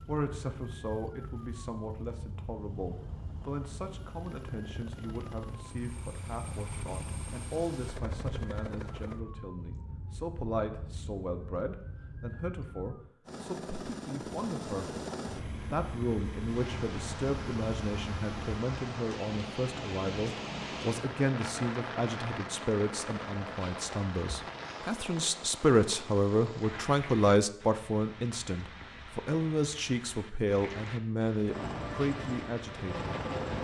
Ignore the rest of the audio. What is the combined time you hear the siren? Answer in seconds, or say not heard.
13 s.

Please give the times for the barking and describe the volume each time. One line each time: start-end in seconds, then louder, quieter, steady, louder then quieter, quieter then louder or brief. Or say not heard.
not heard.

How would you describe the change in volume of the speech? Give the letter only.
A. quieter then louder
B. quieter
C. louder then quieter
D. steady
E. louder
E.